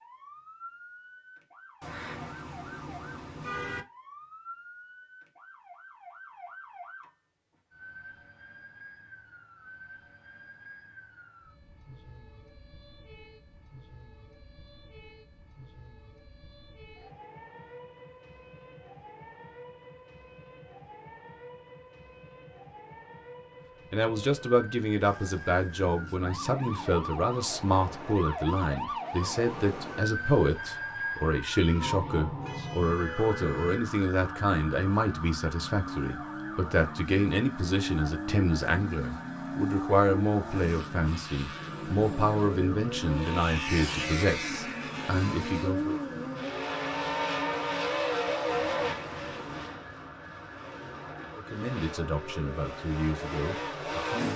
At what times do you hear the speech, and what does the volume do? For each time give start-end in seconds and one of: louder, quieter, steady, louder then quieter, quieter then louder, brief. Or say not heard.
23.9-46.0 steady
51.4-54.3 brief.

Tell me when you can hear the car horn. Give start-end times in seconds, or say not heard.
1.8-3.9, 32.4-33.9, 48.5-49.8.